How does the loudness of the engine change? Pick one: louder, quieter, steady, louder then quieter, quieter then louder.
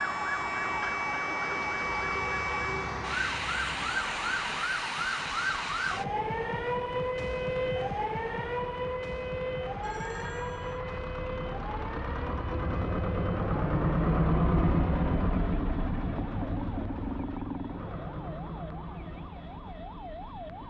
louder then quieter.